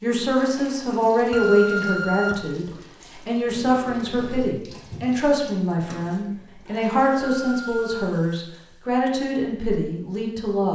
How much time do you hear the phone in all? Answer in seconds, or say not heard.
2 s.